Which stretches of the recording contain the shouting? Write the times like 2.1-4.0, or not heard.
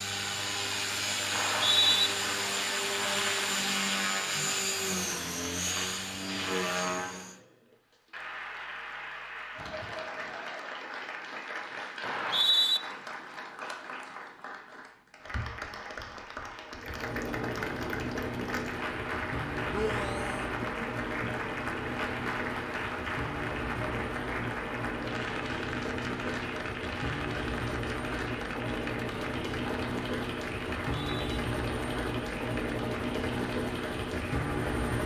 19.7-20.5.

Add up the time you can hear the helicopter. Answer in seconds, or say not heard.
26 s.